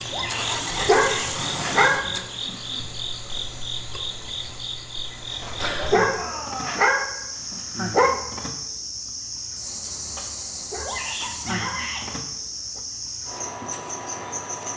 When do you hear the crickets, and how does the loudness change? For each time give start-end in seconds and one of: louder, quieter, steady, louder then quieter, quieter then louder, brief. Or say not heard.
0.0-14.7 steady.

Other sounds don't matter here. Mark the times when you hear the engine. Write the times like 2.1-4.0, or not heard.
0.0-2.2.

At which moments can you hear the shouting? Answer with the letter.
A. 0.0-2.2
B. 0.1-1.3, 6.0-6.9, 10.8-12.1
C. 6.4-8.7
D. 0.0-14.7
B.